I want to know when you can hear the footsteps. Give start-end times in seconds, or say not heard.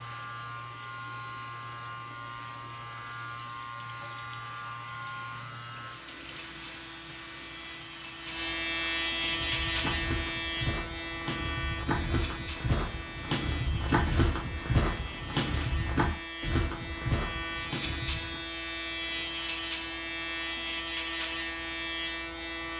9.2-18.4.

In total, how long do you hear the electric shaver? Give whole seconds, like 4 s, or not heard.
23 s.